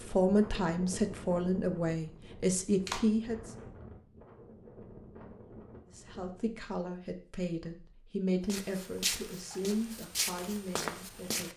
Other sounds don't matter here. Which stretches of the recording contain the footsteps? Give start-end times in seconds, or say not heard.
8.4-11.5.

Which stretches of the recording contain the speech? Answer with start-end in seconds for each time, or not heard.
0.0-3.4, 6.0-11.5.